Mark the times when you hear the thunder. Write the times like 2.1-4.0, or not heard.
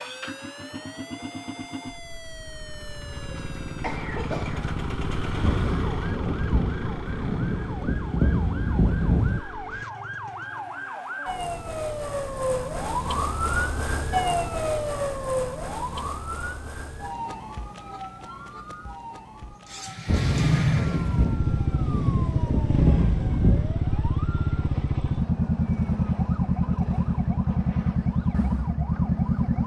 5.4-9.4, 20.1-23.7.